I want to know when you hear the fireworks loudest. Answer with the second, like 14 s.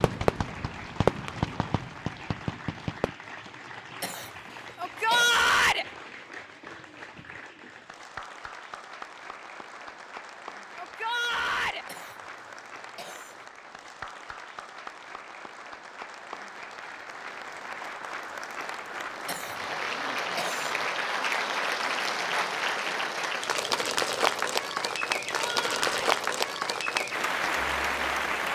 1 s.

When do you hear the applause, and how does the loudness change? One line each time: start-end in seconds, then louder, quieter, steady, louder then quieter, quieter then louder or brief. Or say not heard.
0.0-28.4 louder.